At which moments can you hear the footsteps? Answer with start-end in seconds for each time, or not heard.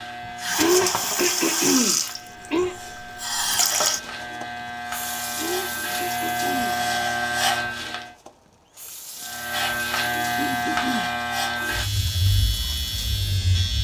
not heard.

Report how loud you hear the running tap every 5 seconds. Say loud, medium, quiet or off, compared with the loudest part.
loud, quiet, quiet.